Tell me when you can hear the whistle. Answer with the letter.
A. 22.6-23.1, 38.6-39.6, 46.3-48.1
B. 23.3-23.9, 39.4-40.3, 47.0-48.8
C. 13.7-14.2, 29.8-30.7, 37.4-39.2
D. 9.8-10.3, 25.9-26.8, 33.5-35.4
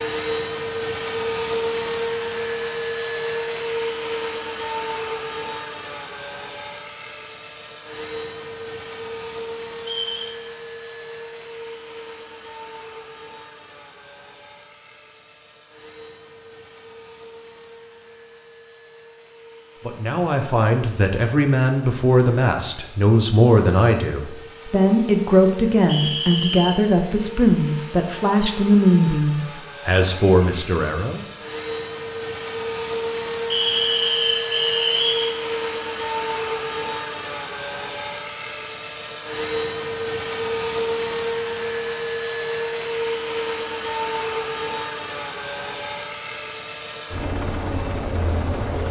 D.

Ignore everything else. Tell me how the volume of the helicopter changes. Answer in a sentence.
The loudness of the helicopter goes down, then up.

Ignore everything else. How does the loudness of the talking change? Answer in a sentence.
The loudness of the talking stays about the same.